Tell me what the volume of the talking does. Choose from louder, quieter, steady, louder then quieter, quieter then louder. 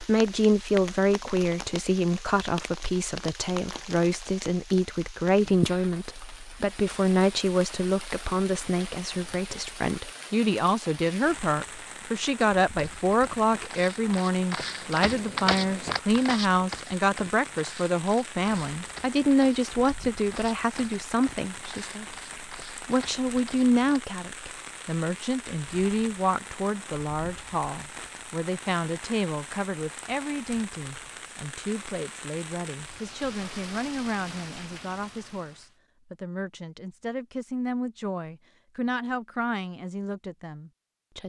quieter.